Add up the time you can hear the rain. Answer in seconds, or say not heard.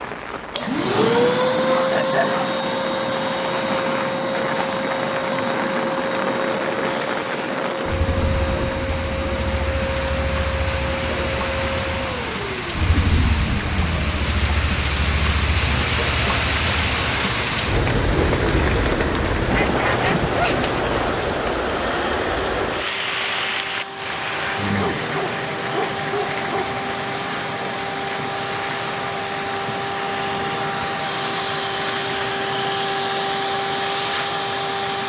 35 s.